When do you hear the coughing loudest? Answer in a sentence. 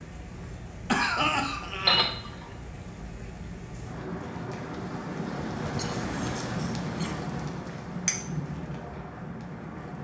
The loudest moment of the coughing is at 1 second.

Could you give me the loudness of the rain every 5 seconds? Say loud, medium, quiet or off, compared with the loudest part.
medium, loud.